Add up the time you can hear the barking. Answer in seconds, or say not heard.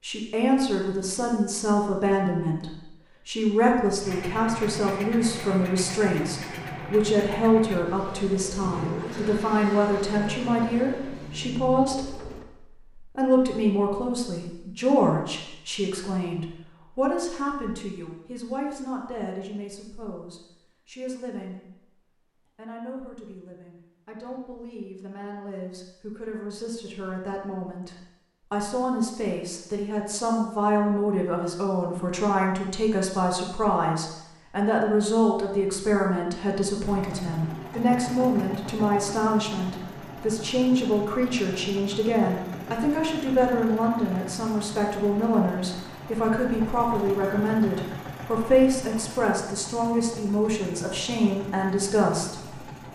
not heard.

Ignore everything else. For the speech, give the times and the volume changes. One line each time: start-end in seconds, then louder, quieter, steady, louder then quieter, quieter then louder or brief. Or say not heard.
0.0-21.9 quieter
22.6-52.5 louder.